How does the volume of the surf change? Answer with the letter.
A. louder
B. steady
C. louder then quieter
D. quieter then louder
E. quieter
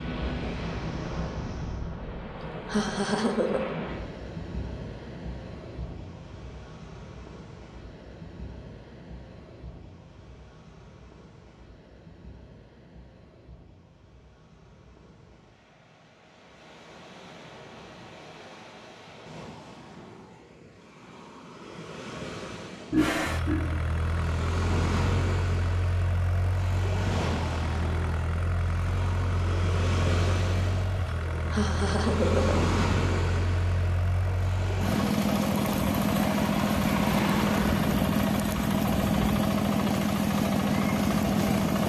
D.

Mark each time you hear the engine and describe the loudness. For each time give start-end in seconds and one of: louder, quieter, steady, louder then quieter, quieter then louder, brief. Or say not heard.
22.9-41.8 louder.